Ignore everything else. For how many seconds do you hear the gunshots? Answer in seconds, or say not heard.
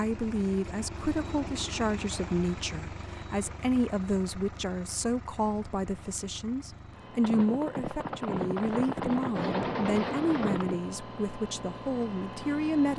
4 s.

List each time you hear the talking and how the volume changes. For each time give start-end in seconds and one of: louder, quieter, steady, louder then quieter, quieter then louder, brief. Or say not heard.
0.0-12.9 steady.